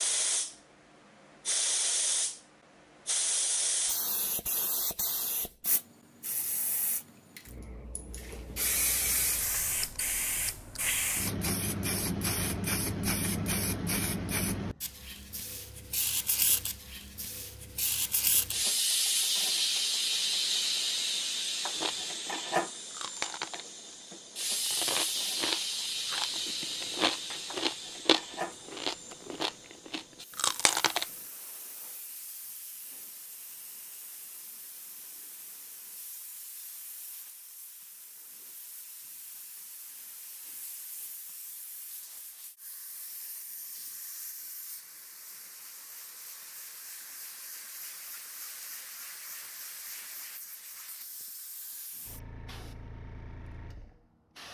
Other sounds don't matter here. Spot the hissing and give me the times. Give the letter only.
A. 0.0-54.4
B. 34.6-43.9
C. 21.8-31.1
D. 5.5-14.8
A.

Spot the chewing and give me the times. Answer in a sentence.
You can hear the chewing from 21.8 to 31.1 s.